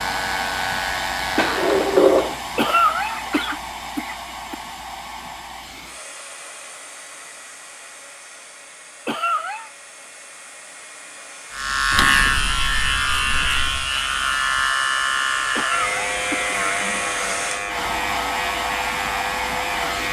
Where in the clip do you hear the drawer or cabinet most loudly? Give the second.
2 s.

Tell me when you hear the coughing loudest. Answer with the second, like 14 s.
3 s.